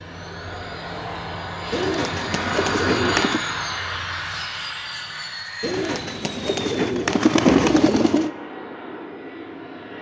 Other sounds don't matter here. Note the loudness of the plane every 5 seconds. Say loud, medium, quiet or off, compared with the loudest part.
loud, medium.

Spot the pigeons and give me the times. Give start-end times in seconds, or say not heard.
1.7-3.4, 5.6-8.3.